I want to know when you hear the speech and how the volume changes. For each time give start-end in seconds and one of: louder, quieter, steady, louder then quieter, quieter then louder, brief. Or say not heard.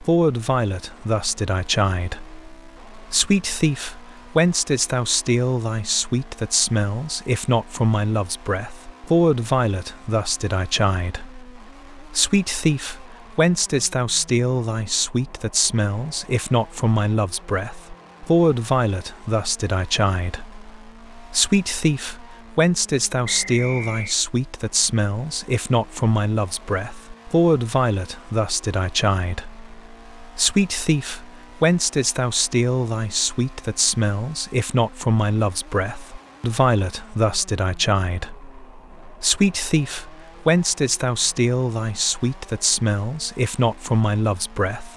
0.0-44.9 steady.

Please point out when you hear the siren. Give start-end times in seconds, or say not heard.
not heard.